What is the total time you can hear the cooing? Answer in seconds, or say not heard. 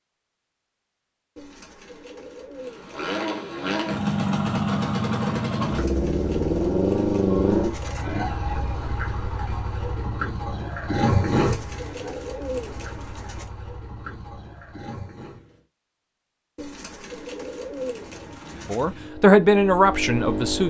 9 s.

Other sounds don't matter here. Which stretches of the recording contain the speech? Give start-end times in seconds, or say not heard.
18.6-20.6.